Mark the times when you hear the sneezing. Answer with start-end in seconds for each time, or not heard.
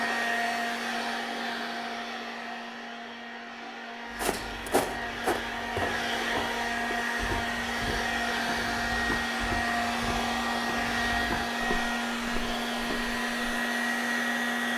not heard.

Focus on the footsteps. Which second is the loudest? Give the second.
5 s.